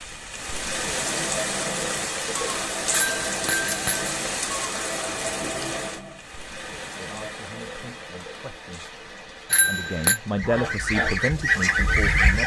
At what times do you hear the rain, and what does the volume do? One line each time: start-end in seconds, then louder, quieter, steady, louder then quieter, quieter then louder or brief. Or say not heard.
0.0-10.6 quieter.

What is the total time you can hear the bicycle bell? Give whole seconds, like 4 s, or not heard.
2 s.